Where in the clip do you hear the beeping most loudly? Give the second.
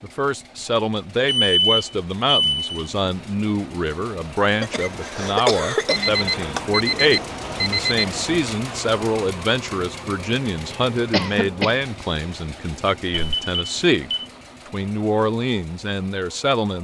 2 s.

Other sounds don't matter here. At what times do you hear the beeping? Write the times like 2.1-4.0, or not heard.
1.2-2.8, 5.8-8.4, 13.1-14.2.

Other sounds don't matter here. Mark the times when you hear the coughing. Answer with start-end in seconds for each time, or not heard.
4.6-6.8, 11.1-11.8.